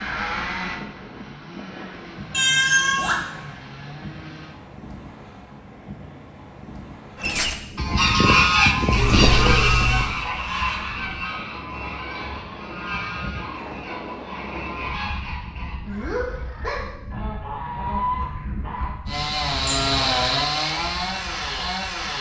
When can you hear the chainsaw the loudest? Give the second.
20 s.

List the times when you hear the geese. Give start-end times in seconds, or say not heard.
7.2-18.9.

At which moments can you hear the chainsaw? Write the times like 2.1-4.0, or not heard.
0.0-4.5, 19.1-22.1.